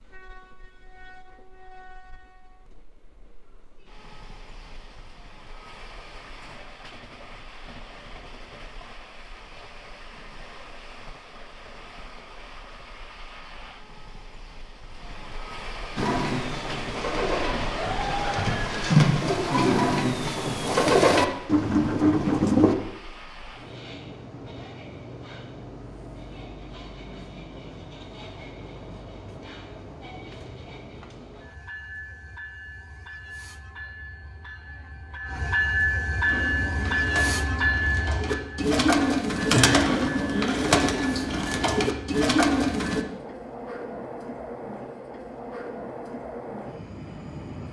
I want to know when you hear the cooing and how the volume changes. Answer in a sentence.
The cooing can be heard from 15.9 to 22.8 s, getting louder; and from 36.2 to 43.0 s, getting louder.